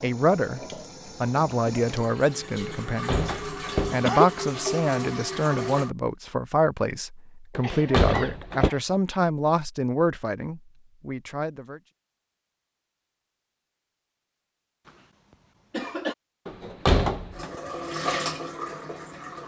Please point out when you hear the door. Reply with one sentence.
You can hear the door from 2.9 to 4.0 s, from 7.5 to 8.7 s and from 16.4 to 17.6 s.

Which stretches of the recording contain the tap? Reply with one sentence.
The tap can be heard from 0.0 to 5.9 s and from 17.3 to 19.4 s.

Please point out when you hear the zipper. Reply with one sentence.
The zipper can't be heard in this clip.